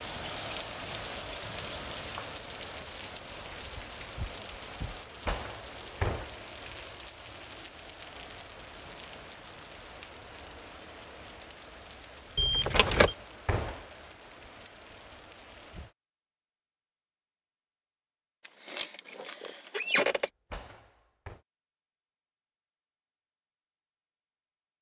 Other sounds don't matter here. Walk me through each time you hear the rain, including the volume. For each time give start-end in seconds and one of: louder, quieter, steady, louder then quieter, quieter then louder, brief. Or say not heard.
0.0-15.9 quieter.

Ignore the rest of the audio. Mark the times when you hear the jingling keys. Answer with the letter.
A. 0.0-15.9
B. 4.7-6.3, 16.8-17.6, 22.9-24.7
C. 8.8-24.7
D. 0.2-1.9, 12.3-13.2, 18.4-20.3
D.